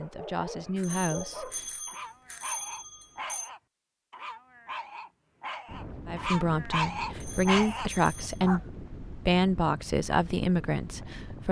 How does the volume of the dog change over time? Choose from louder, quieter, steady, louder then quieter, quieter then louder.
louder.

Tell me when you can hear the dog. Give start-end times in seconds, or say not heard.
0.0-8.6.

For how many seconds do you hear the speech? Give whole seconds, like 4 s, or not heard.
7 s.